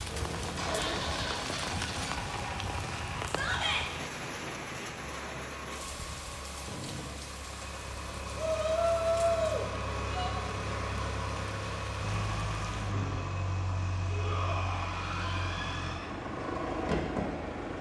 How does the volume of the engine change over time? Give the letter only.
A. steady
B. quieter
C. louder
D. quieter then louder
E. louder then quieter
D.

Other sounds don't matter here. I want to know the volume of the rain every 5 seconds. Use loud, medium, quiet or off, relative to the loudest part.
loud, medium, medium, off.